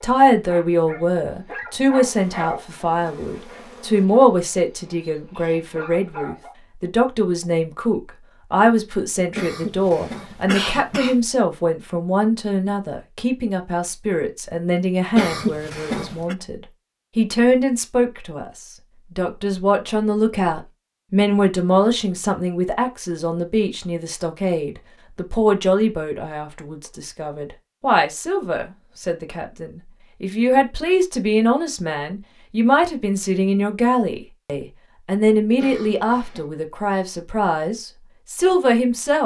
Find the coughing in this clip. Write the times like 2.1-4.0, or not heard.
9.3-11.2, 15.2-16.4, 35.6-36.5.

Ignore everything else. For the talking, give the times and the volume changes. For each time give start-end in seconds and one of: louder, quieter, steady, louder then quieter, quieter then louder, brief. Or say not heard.
0.0-39.2 steady.